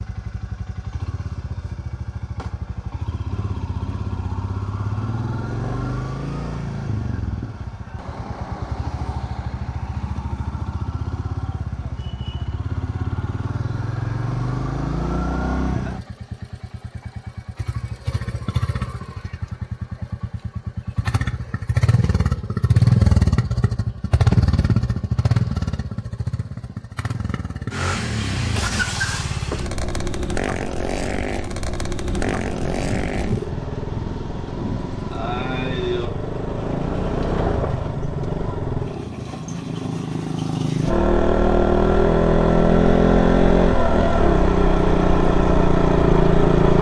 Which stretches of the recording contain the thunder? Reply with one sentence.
You can hear the thunder from 32.0 to 36.1 s.